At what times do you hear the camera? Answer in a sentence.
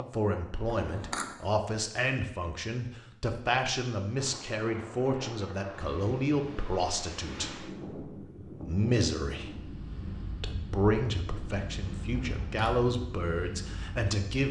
You can hear the camera from 0.8 to 1.4 s and from 12.1 to 12.8 s.